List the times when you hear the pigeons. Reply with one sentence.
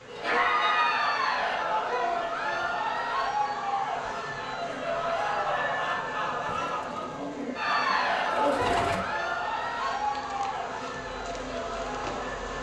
You can hear the pigeons from 6.5 to 9.1 s.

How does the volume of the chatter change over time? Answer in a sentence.
The volume of the chatter goes down.